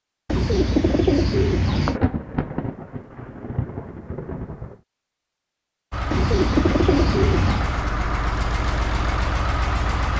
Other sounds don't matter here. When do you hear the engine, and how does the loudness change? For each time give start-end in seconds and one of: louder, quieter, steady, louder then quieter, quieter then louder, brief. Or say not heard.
5.9-10.1 steady.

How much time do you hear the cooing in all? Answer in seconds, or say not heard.
3 s.